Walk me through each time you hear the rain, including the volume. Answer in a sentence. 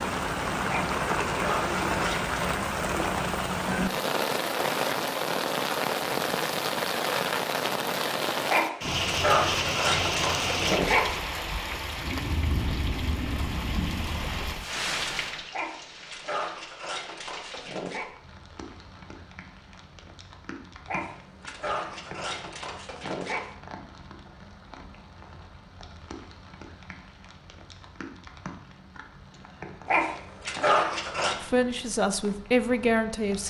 The rain can be heard from 0.0 to 33.4 s, getting quieter.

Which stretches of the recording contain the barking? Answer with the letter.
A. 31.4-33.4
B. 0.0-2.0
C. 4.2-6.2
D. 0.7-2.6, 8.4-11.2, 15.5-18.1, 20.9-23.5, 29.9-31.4
D.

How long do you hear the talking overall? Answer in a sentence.
The talking can be heard for 2 seconds in total.